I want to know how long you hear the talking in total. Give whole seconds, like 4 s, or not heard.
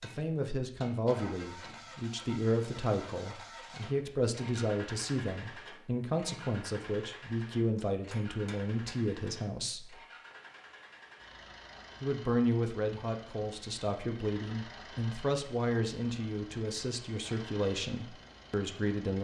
17 s.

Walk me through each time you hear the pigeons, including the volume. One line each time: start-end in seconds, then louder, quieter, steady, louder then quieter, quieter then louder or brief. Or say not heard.
not heard.